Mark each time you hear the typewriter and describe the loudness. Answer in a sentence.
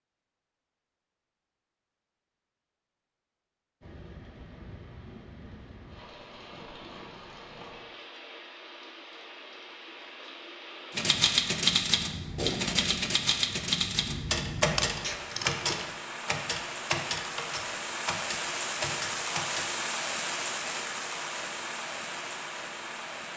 You can hear the typewriter from 10.9 to 19.8 s, getting quieter.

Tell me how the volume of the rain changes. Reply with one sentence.
The loudness of the rain goes up.